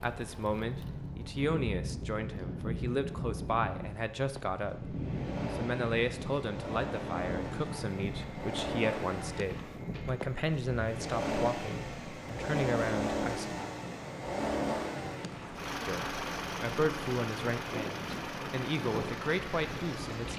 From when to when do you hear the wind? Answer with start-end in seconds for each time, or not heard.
0.0-20.3.